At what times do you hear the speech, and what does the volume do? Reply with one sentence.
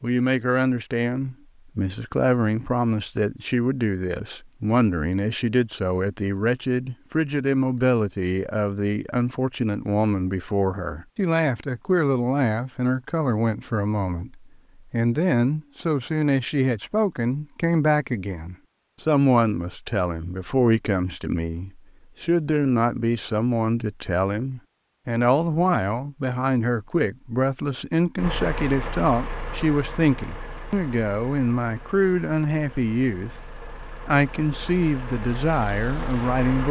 You can hear the speech from 0.0 to 36.6 s, at a steady volume.